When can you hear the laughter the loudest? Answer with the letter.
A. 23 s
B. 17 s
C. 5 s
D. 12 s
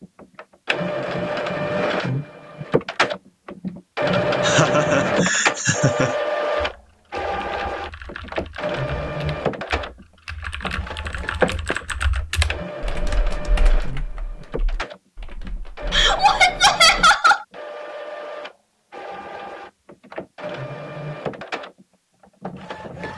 B.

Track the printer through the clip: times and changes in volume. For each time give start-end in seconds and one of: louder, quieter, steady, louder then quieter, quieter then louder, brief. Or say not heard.
0.0-23.1 quieter.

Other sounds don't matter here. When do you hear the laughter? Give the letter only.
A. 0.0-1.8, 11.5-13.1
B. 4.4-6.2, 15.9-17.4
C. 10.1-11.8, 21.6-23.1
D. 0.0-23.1
B.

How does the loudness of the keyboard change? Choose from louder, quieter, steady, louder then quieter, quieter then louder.
louder then quieter.